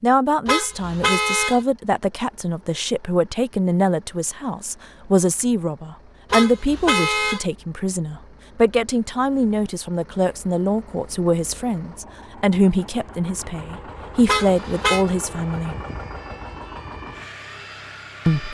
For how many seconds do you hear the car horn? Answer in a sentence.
The car horn can be heard for 3 seconds in total.